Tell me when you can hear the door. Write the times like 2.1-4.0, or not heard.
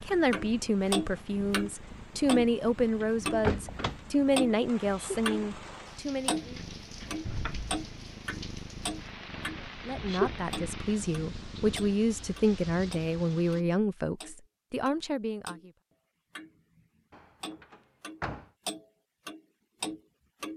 3.0-4.2, 7.2-7.8, 17.1-18.5.